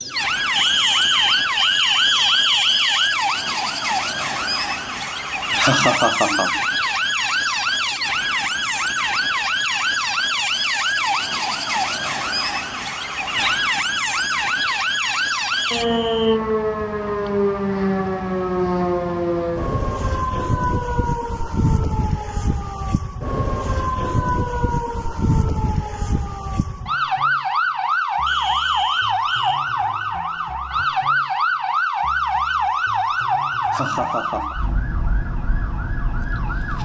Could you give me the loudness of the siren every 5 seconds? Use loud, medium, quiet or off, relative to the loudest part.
loud, loud, loud, loud, loud, loud, loud, medium.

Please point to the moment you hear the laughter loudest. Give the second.
6 s.